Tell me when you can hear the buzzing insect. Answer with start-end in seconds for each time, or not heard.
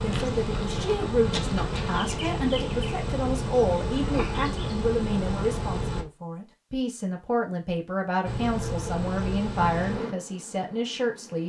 0.0-6.0, 8.2-11.4.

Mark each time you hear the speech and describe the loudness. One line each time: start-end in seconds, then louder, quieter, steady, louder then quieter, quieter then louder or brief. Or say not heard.
0.0-11.4 steady.